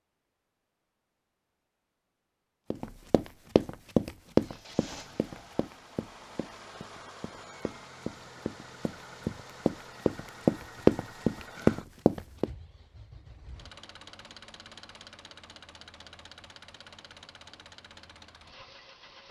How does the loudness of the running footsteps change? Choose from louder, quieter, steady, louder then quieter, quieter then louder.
quieter then louder.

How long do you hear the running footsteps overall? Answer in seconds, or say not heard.
10 s.